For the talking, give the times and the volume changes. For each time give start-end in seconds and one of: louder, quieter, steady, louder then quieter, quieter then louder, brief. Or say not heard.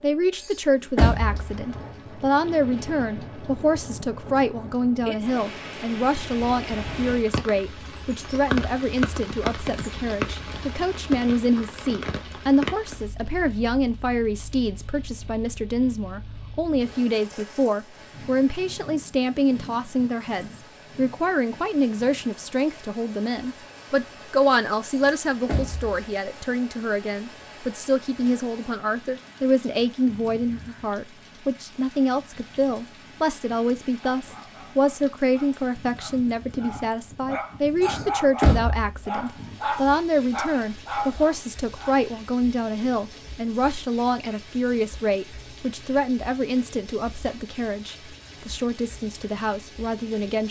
0.0-50.4 steady.